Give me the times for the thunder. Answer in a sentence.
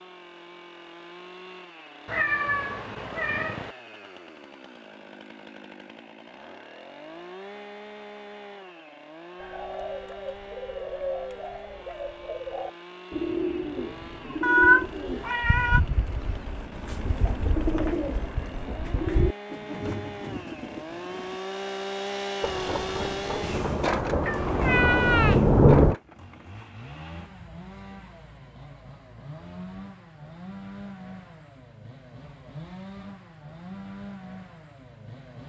You can hear the thunder from 22.4 to 25.9 s.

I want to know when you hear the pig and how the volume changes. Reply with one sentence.
You can't hear the pig here.